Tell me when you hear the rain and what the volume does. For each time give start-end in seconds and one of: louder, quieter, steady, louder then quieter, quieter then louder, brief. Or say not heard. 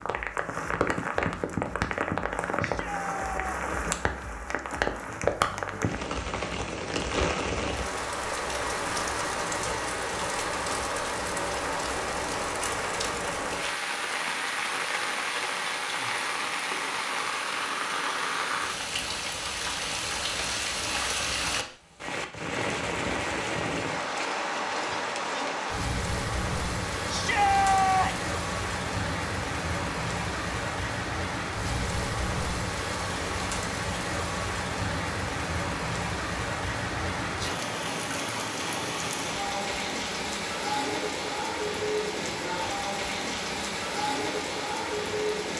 0.0-45.5 steady.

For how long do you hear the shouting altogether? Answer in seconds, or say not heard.
2 s.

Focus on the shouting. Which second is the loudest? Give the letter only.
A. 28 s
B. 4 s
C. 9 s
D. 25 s
A.